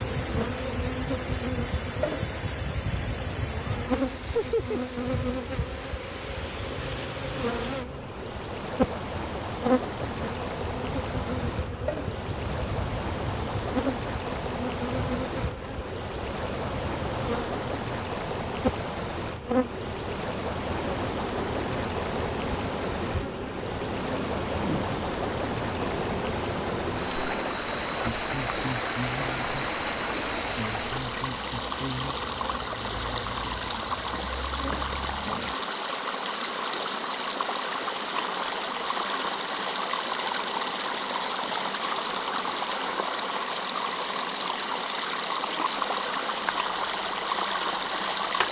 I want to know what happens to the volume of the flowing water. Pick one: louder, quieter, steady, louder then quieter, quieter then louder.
louder.